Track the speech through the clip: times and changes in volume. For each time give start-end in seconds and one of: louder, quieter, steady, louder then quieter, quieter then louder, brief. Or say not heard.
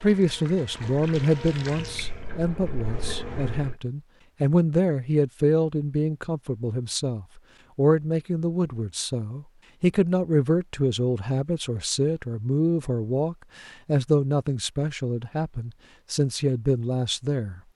0.0-17.6 steady.